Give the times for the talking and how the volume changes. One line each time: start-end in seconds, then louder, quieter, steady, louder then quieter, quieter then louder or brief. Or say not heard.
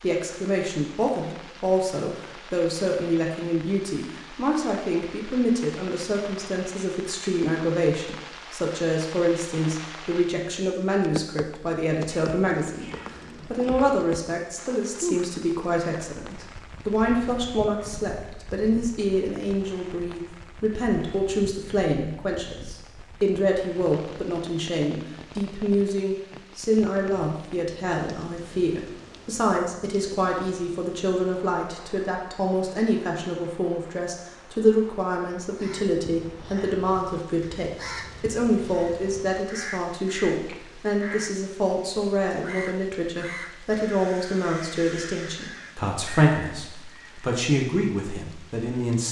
0.0-49.0 steady.